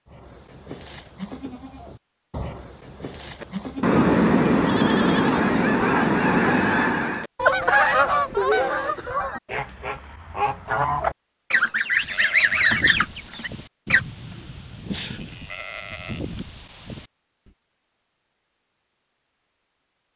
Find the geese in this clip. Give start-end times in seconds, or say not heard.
3.4-14.0.